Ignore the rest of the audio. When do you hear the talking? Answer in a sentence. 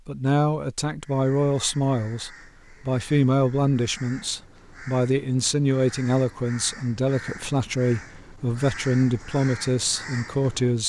The talking can be heard from 0.1 to 10.8 s.